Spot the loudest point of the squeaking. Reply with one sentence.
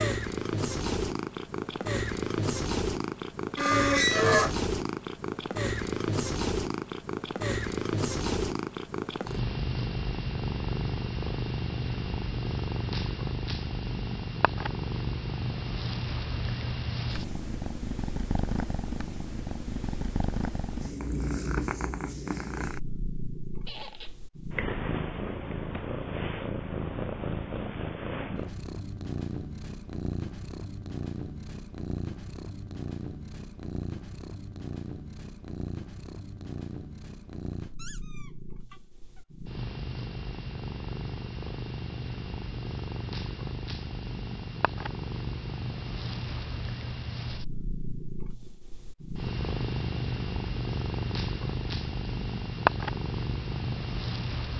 The volume of the squeaking peaks at 4 seconds.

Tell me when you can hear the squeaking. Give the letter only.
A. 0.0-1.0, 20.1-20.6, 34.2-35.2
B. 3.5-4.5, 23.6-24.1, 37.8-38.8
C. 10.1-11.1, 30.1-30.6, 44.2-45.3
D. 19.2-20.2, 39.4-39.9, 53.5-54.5
B.